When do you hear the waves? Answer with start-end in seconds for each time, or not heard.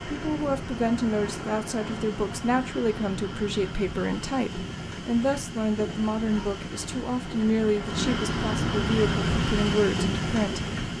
0.0-10.9.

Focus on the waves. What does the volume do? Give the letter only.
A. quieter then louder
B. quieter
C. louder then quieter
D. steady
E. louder
E.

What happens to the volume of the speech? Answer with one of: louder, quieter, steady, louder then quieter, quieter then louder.
steady.